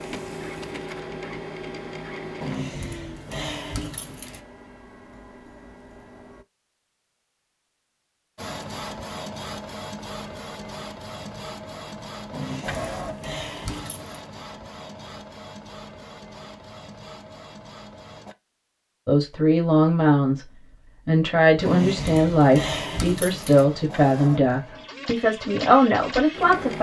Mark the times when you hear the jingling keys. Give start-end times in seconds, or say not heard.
2.4-4.4, 12.3-14.2, 21.6-23.6.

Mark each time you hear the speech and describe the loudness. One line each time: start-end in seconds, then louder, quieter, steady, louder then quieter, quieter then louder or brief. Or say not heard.
19.1-26.7 steady.